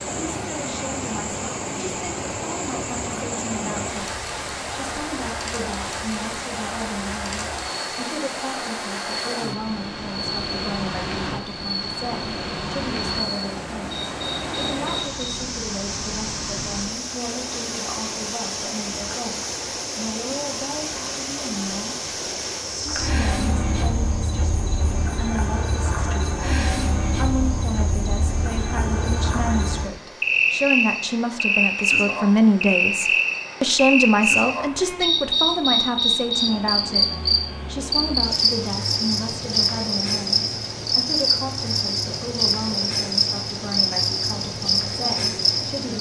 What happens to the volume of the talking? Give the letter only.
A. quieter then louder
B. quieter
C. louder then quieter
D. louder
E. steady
C.